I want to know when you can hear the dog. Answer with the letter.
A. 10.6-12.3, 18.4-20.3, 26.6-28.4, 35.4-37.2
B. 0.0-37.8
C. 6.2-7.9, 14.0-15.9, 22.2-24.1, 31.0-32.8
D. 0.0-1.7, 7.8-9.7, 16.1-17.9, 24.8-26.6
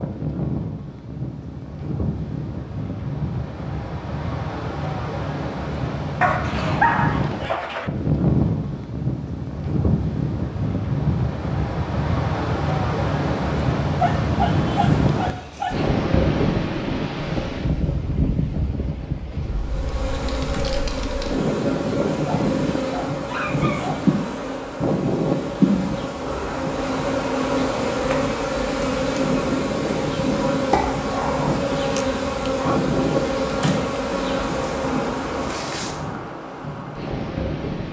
C.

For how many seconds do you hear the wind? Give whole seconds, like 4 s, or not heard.
38 s.